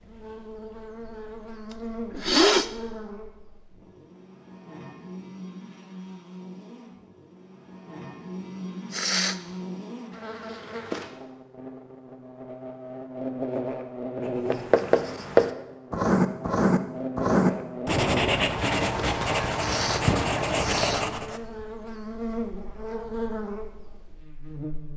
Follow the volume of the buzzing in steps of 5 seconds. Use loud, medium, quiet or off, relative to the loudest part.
medium, medium, loud, loud, loud.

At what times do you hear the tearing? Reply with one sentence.
The tearing can't be heard in this clip.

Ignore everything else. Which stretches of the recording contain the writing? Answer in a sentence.
You can hear the writing from 14.5 to 21.4 s.